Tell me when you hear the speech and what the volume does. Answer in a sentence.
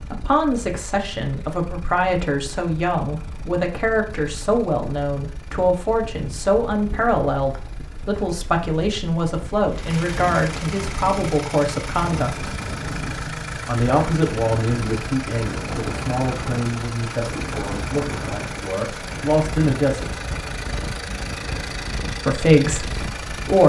You can hear the speech from 0.0 to 12.5 s, at a steady volume; from 13.7 to 20.1 s, getting quieter then louder; and briefly from 22.2 to 23.6 s.